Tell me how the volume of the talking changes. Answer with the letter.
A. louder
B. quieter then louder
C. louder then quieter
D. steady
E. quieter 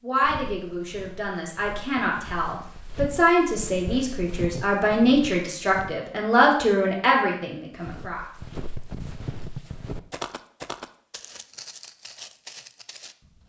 A.